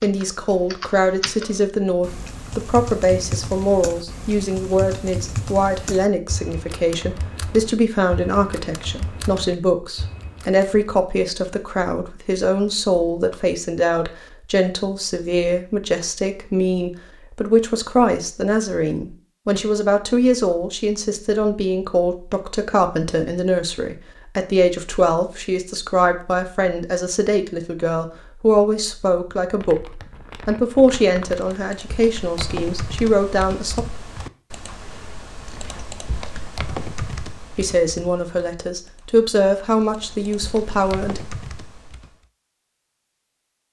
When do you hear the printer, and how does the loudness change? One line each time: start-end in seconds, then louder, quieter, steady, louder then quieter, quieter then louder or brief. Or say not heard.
not heard.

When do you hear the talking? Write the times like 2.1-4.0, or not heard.
0.0-33.9, 37.5-41.2.